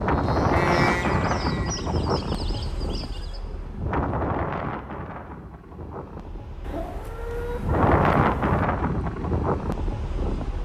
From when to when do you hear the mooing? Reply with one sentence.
You can hear the mooing from 0.0 to 1.8 s.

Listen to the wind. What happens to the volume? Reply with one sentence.
The loudness of the wind goes down, then up.